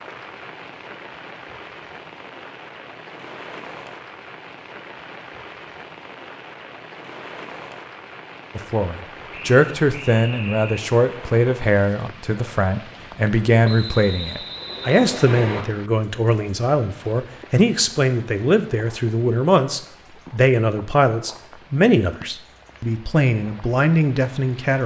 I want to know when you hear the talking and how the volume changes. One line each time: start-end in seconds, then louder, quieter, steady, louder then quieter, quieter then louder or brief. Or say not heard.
8.6-24.8 steady.